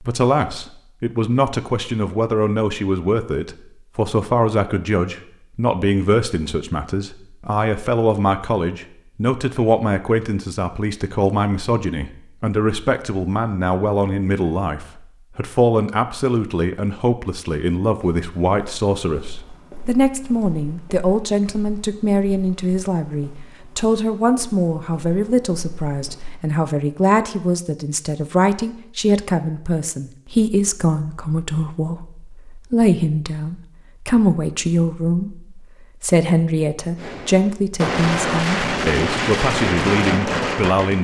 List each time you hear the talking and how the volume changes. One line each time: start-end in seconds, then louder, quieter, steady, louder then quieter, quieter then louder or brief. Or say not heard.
0.0-40.9 steady.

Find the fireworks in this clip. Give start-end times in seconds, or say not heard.
37.0-40.9.